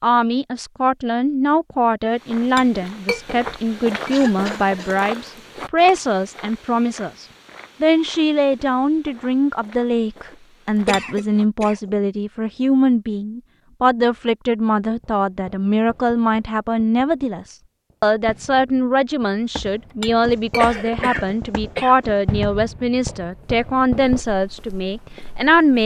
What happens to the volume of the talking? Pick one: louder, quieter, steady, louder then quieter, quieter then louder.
steady.